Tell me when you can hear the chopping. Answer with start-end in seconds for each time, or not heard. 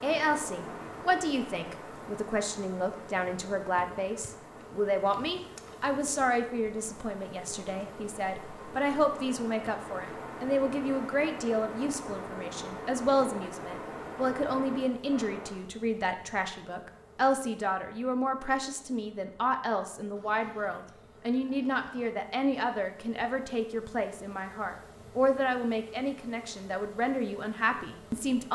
not heard.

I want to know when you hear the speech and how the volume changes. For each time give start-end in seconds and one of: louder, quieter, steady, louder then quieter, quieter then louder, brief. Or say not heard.
0.0-28.4 steady.